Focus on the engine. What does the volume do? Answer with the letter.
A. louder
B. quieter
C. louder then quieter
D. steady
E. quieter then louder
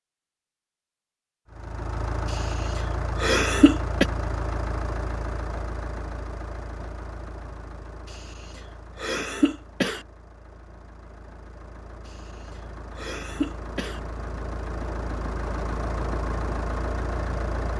E.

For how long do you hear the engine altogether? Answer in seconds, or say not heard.
16 s.